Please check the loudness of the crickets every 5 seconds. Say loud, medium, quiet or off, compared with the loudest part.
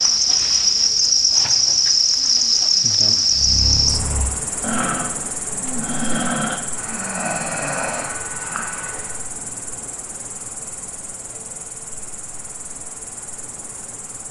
loud, quiet, quiet.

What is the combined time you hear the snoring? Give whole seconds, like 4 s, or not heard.
6 s.